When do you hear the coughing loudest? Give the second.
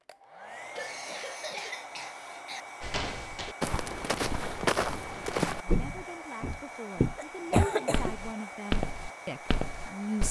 8 s.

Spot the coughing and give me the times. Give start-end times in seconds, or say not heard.
0.8-2.6, 7.2-8.2.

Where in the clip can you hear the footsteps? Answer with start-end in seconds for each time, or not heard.
2.8-10.2.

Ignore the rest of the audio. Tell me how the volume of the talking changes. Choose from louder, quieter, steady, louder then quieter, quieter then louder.
louder.